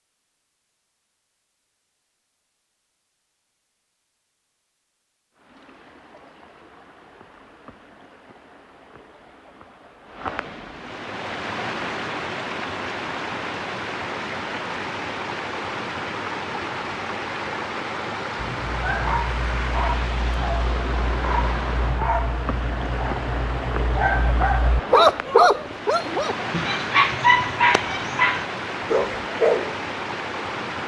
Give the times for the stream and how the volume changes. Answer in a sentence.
The stream can be heard from 5.3 to 30.8 s, getting louder.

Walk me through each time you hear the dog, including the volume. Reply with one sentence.
You can hear the dog from 18.4 to 29.8 s, getting louder.